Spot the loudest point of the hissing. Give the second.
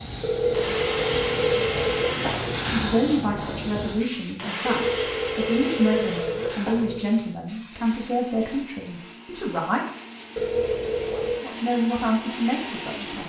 3 s.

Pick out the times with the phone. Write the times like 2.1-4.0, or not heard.
0.2-2.6, 4.7-7.0, 10.3-11.4.